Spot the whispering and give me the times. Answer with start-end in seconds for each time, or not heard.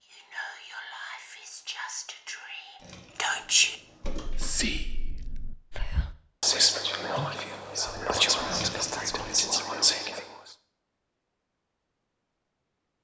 0.1-10.5.